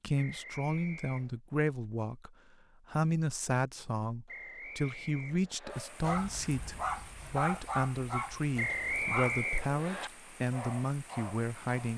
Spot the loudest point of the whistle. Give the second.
9 s.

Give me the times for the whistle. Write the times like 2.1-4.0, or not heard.
0.1-1.4, 4.2-5.8, 8.6-10.1.